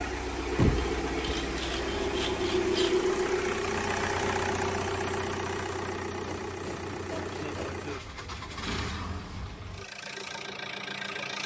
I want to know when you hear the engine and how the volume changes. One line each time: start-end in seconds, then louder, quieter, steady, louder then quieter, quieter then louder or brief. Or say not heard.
0.0-11.4 quieter.